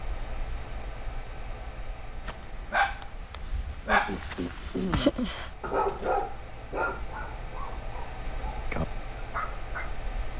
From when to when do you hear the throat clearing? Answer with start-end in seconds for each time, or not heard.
3.5-5.2.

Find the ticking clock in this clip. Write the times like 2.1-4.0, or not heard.
not heard.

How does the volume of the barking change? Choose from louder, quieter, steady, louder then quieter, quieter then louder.
quieter.